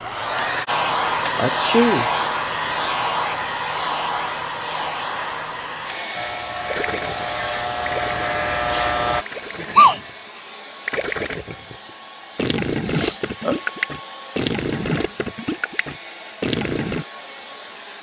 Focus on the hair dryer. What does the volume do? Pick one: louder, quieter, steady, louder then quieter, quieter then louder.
quieter.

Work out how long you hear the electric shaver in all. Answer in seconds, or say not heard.
3 s.